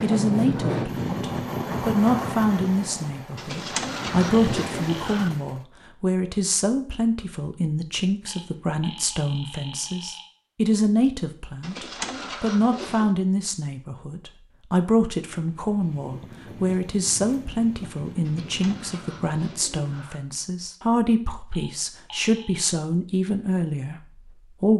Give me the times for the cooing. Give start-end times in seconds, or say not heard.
3.4-5.3, 11.6-13.2, 18.2-20.2.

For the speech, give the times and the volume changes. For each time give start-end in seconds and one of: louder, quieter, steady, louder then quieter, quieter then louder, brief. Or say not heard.
0.0-24.7 steady.